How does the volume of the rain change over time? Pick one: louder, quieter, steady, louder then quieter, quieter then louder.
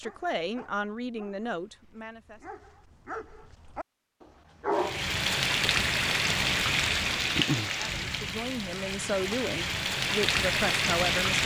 quieter then louder.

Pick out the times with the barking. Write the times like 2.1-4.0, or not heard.
0.0-5.2.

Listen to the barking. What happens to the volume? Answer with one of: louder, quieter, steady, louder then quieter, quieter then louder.
quieter then louder.